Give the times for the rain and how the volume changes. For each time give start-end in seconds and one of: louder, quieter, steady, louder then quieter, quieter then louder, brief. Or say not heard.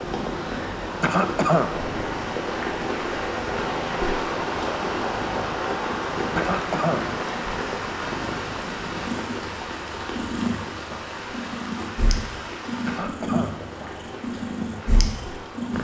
0.0-15.7 quieter.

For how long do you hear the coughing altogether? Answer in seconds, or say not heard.
2 s.